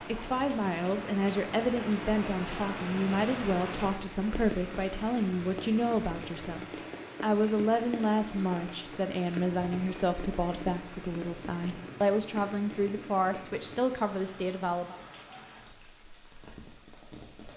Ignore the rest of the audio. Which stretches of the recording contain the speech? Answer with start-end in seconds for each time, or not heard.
0.0-15.0.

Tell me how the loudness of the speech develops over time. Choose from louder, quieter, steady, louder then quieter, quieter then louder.
steady.